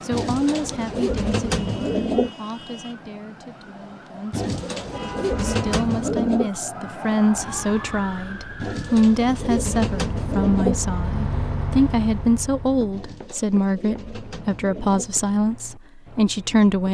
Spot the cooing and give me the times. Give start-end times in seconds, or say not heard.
0.1-2.3, 4.3-6.5, 8.6-10.8, 12.9-15.1.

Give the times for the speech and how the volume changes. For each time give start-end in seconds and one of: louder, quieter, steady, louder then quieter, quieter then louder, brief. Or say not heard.
0.1-16.8 louder.